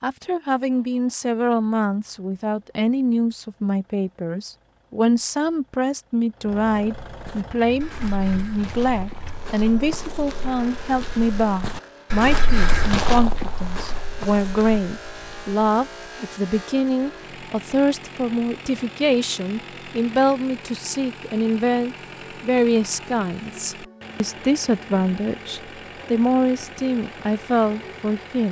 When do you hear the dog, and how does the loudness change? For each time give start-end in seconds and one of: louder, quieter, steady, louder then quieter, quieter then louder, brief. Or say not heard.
not heard.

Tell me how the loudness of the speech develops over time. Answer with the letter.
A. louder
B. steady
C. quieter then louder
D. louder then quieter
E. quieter
B.